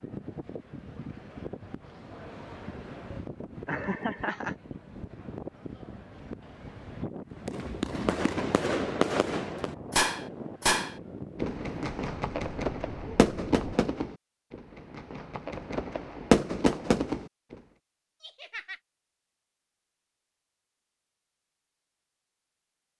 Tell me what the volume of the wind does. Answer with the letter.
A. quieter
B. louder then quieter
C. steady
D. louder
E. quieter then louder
C.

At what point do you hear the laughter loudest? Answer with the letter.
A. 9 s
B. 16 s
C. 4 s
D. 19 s
C.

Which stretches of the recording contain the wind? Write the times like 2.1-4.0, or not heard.
0.0-13.8.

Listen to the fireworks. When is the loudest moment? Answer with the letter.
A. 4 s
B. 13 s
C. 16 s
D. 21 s
C.